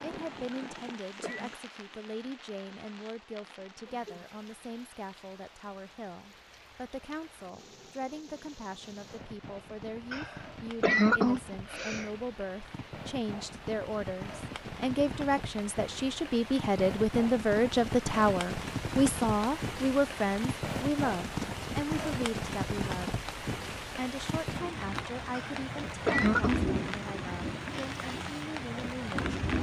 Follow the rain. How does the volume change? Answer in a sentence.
The loudness of the rain goes up.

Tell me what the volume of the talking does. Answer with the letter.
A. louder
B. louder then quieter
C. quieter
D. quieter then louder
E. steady
B.